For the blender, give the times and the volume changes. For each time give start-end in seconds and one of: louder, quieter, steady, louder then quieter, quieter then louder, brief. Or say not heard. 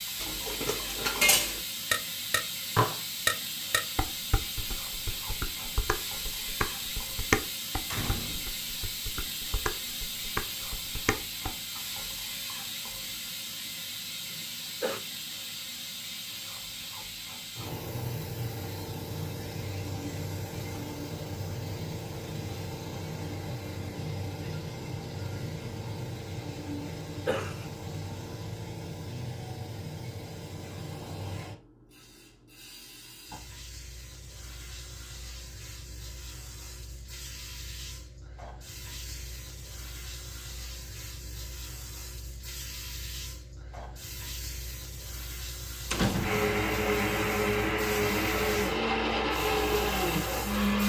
46.2-50.8 steady.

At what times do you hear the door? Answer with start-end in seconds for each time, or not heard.
7.8-8.5, 45.9-46.5.